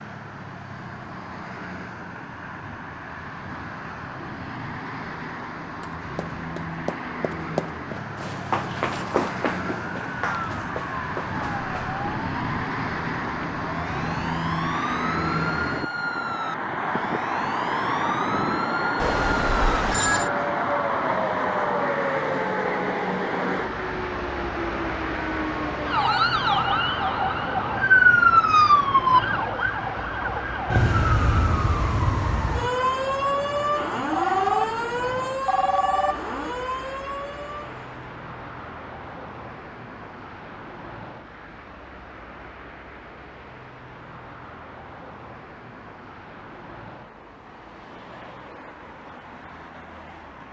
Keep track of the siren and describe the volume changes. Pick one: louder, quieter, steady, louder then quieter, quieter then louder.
louder then quieter.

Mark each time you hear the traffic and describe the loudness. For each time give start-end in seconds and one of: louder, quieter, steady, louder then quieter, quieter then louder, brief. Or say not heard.
0.0-50.4 louder then quieter.